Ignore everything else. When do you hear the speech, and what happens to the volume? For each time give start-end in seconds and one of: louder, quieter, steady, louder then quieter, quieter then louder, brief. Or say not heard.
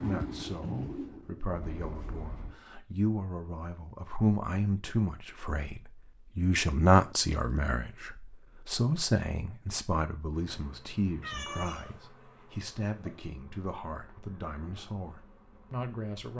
0.0-16.3 louder then quieter.